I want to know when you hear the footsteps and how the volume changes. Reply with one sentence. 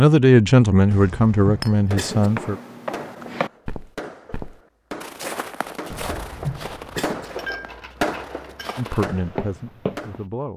The footsteps can be heard from 2.0 to 10.2 s, getting quieter then louder.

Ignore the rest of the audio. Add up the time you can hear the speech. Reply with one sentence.
You can hear the speech for 4 seconds altogether.